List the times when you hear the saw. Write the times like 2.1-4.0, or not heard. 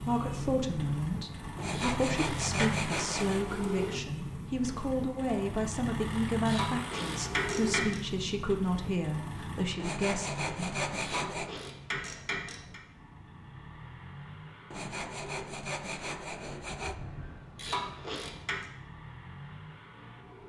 1.6-3.5, 9.8-11.6, 14.7-16.9.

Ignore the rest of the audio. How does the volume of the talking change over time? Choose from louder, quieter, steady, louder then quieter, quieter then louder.
steady.